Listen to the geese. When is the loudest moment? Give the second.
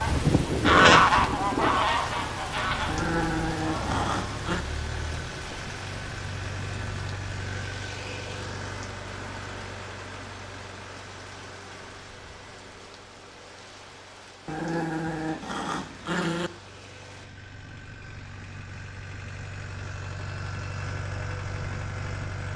1 s.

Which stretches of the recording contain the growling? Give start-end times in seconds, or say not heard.
2.9-4.7, 14.4-16.5.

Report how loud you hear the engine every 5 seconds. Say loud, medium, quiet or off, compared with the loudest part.
loud, loud, medium, medium, loud.